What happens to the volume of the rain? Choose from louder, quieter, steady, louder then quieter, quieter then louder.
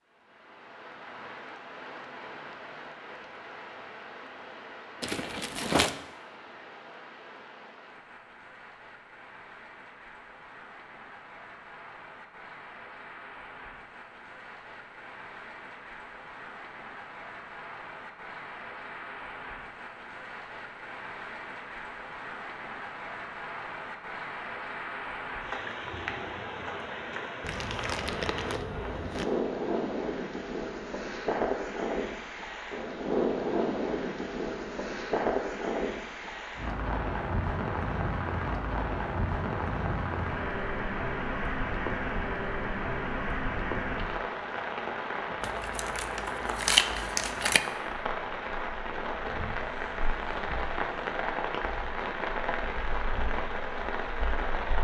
louder.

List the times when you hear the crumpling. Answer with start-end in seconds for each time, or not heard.
5.0-6.0, 27.4-29.2, 45.4-47.6.